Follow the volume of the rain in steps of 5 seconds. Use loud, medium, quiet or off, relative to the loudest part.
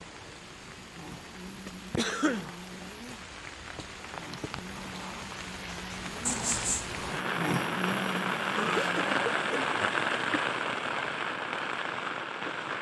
quiet, loud, loud.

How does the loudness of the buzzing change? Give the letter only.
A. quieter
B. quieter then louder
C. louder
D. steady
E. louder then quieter
C.